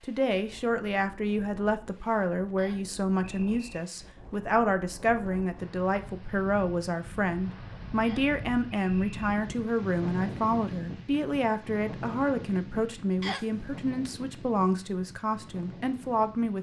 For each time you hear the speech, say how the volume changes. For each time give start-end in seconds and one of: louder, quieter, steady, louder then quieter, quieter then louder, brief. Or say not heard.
0.0-16.5 steady.